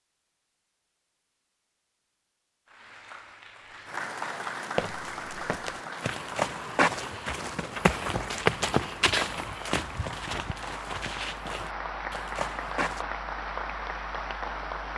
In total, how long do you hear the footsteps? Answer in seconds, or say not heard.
8 s.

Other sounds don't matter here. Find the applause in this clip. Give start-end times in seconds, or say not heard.
2.6-14.9.